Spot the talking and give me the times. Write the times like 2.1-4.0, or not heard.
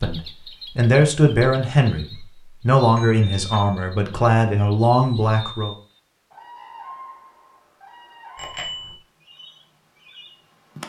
0.0-5.8.